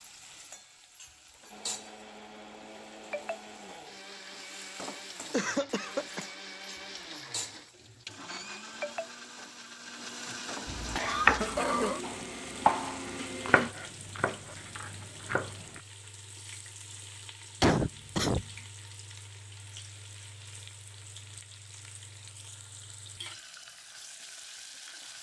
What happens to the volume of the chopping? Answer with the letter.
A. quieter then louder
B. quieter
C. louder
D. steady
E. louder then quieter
B.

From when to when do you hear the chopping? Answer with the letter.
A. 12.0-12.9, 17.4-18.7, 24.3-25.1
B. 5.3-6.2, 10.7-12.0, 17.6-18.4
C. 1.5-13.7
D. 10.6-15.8
D.